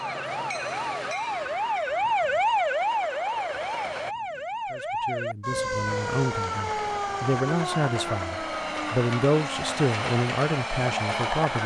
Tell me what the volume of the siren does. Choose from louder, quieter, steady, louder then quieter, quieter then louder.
quieter.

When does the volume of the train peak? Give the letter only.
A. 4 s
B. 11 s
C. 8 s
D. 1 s
B.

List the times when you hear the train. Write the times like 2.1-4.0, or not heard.
0.0-4.2, 5.8-11.6.